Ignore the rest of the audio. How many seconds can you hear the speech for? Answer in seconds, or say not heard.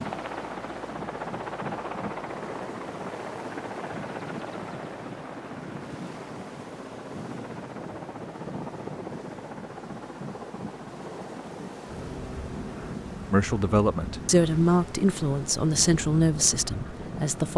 4 s.